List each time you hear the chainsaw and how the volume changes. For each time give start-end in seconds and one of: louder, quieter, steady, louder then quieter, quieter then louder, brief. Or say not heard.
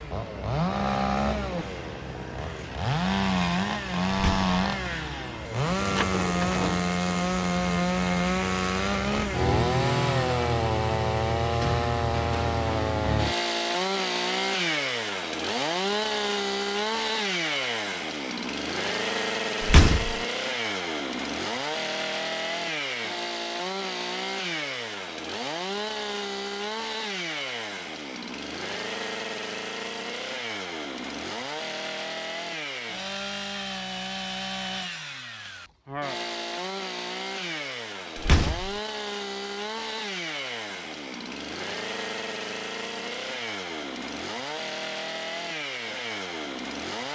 0.0-47.0 quieter.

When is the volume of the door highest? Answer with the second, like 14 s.
20 s.